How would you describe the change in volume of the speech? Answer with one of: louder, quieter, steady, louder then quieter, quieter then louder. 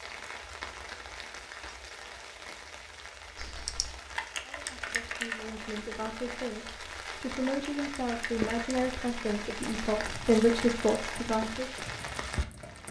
louder.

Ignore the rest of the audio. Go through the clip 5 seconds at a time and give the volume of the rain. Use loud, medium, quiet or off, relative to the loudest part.
medium, loud, loud.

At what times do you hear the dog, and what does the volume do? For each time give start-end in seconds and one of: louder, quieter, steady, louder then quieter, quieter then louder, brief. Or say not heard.
not heard.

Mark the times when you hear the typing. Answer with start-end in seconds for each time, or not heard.
3.4-5.4, 7.5-12.8.